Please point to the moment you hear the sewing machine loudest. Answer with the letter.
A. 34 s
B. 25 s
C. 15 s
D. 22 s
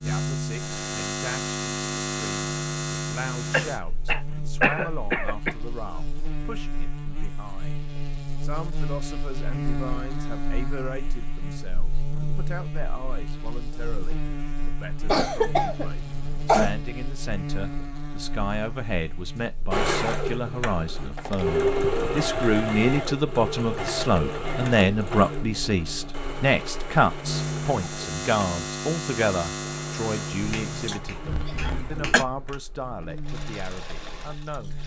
D.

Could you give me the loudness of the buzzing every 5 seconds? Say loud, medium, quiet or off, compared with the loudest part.
loud, medium, medium, medium, medium, loud, medium.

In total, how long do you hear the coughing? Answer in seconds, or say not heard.
5 s.